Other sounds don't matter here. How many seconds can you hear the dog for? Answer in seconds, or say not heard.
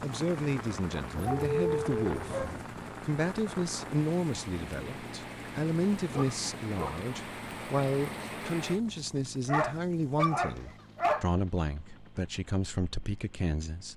4 s.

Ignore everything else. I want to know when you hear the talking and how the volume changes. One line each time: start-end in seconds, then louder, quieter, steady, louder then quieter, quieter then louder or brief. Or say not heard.
0.0-13.9 steady.